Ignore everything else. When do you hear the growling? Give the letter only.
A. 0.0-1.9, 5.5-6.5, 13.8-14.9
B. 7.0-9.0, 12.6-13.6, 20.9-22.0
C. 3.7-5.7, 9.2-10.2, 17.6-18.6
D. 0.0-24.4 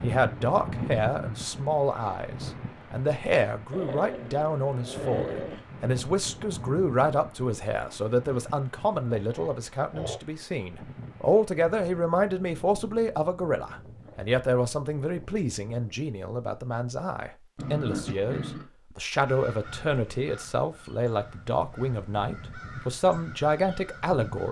C.